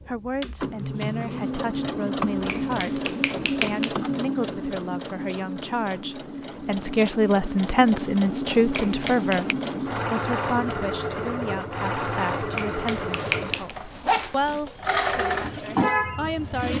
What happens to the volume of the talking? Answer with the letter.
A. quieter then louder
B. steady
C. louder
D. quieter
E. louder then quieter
E.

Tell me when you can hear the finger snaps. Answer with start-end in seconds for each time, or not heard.
2.5-4.0, 8.7-9.6, 12.6-13.7.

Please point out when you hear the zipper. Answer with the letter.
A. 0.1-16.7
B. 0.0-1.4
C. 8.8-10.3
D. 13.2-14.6
D.